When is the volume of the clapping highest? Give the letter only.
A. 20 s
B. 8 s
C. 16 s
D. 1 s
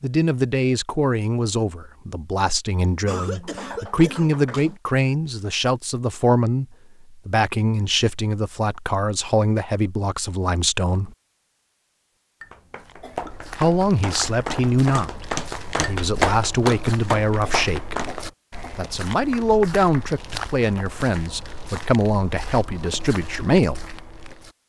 C.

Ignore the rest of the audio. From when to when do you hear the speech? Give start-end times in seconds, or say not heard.
0.0-11.1, 13.6-18.0, 18.8-23.9.